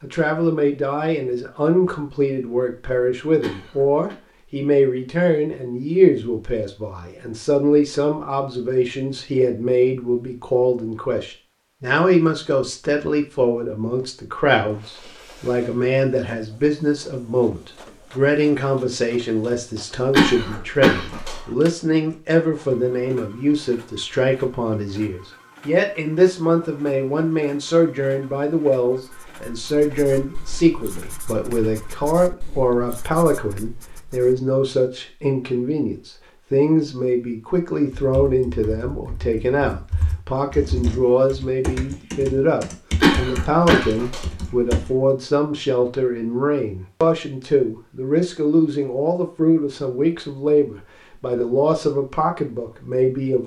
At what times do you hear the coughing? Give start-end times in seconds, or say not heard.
3.4-4.2, 20.1-21.4, 43.0-44.8.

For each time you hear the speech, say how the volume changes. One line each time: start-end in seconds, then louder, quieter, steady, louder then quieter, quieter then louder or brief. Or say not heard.
0.0-53.4 steady.